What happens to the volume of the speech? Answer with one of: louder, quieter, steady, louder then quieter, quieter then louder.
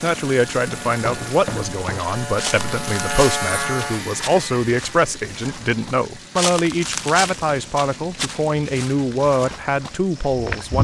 steady.